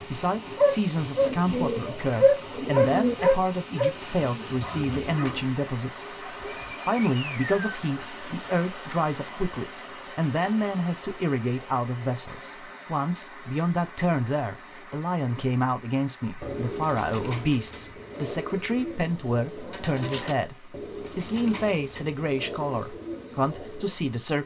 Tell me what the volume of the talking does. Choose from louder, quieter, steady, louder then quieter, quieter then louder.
steady.